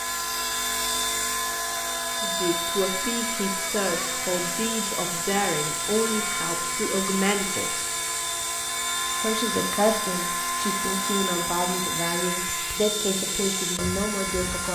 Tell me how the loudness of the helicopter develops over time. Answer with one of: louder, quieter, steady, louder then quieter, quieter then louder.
steady.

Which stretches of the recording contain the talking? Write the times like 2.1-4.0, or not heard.
2.2-7.8, 9.2-14.7.